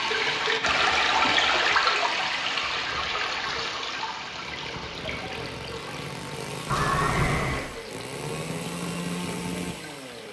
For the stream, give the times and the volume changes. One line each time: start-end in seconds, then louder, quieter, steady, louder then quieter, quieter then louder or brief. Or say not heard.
0.0-10.2 quieter.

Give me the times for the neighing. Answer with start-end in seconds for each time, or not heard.
6.7-7.7.